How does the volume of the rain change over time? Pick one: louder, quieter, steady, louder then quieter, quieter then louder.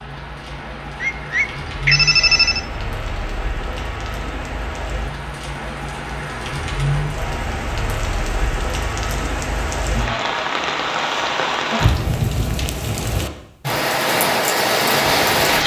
louder.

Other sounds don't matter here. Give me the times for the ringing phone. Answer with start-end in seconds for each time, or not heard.
1.0-2.6.